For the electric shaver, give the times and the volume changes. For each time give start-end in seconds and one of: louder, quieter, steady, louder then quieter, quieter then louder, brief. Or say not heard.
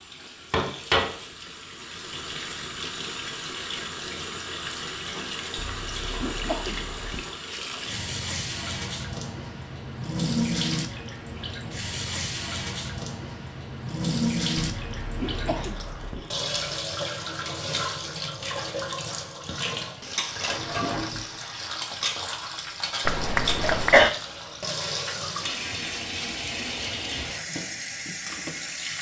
not heard.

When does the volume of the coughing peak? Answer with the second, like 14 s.
24 s.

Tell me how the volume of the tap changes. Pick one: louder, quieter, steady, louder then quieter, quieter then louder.
steady.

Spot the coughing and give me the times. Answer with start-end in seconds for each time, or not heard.
5.5-7.2, 14.7-16.3, 23.1-24.1.